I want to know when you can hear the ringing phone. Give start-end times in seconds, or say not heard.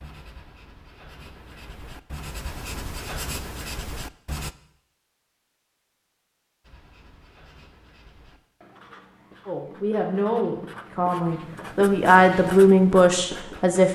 not heard.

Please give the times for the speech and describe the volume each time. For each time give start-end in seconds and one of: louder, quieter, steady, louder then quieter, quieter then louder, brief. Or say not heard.
9.4-13.8 louder.